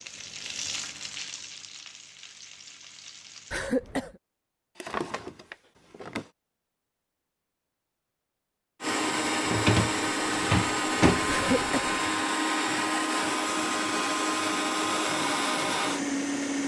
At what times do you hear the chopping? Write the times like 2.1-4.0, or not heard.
not heard.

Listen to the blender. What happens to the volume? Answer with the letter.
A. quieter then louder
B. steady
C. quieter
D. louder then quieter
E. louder
B.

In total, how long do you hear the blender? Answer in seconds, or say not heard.
8 s.